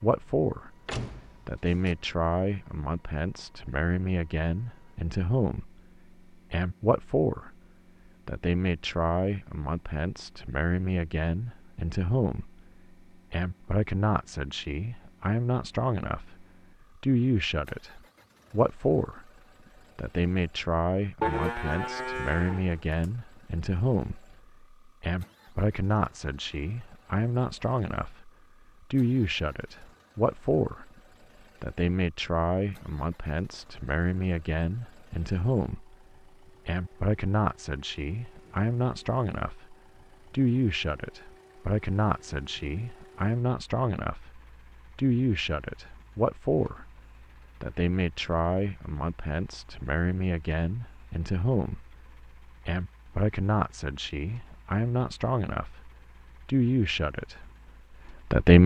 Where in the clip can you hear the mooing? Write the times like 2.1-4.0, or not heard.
21.2-23.1.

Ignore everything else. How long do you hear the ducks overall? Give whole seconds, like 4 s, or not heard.
not heard.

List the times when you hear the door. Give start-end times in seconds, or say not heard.
0.8-1.9.